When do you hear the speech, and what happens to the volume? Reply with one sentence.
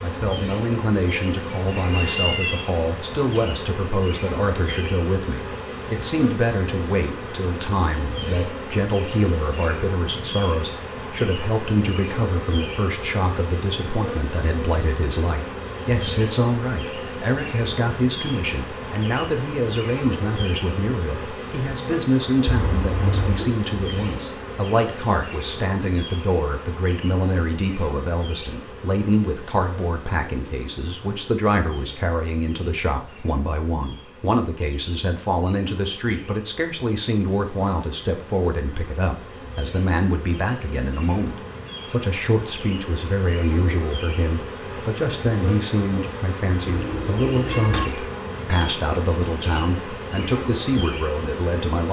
The speech can be heard from 0.0 to 51.8 s, at a steady volume.